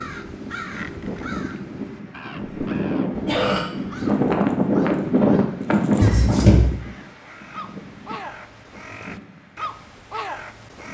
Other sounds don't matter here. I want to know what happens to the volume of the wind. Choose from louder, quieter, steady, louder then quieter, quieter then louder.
louder then quieter.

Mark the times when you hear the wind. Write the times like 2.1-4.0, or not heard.
0.0-10.8.